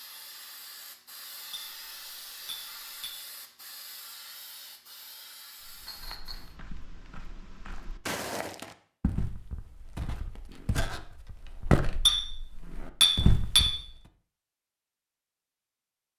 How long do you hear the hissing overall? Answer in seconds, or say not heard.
6 s.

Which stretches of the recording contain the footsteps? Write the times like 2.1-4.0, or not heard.
5.6-13.9.